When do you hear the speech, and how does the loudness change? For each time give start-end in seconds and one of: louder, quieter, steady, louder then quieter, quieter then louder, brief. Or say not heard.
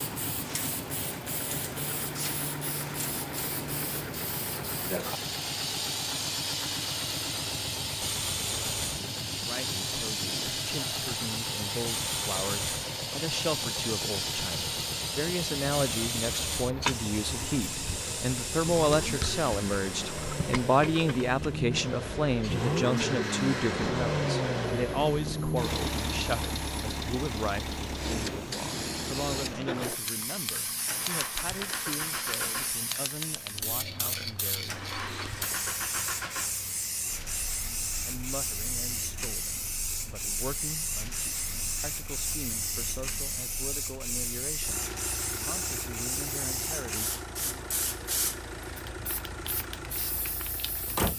9.3-34.8 louder then quieter
37.9-47.7 steady.